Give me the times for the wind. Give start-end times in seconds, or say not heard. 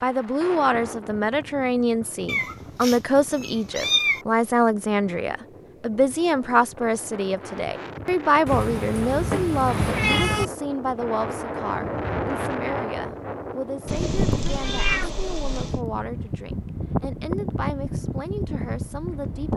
0.0-19.5.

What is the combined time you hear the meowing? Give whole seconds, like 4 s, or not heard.
6 s.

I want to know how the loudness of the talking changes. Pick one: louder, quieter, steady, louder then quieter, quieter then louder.
quieter.